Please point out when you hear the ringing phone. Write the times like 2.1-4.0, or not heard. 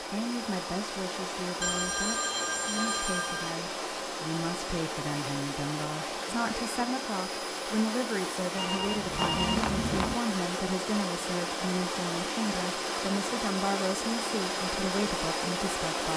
1.6-3.5, 8.6-10.2.